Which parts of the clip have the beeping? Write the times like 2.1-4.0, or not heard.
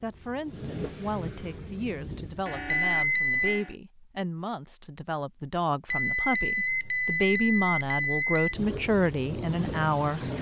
2.6-3.6, 5.8-8.6.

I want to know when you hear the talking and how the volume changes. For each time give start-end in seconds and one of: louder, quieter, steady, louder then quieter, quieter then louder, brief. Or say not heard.
0.0-10.2 louder.